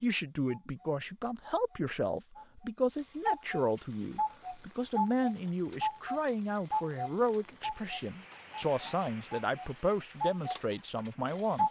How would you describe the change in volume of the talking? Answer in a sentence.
The loudness of the talking stays about the same.